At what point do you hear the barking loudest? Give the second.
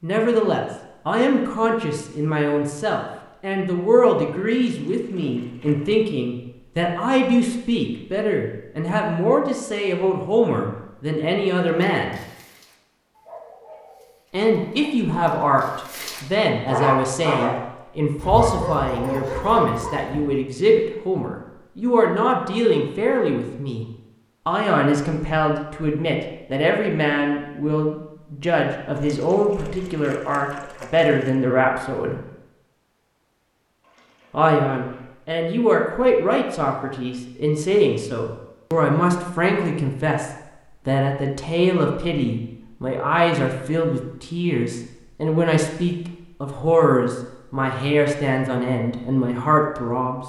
17 s.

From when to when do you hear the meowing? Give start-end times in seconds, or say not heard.
not heard.